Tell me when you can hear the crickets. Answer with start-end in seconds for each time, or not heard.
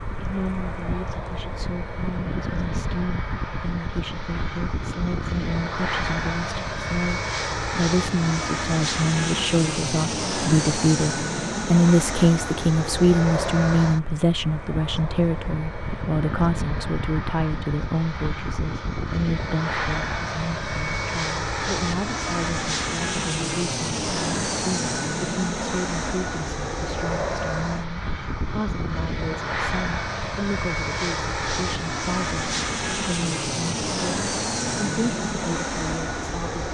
not heard.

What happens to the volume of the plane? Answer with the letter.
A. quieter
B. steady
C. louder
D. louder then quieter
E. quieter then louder
B.